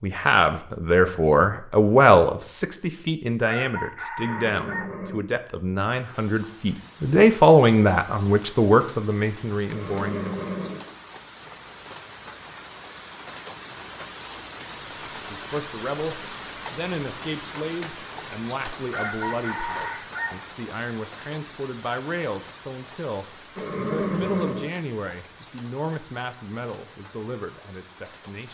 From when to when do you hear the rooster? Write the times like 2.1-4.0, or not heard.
3.5-4.8, 18.9-20.3.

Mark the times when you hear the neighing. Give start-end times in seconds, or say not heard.
4.2-5.2, 9.7-10.9, 23.6-24.7.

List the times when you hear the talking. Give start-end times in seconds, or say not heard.
0.0-10.3, 15.3-28.4.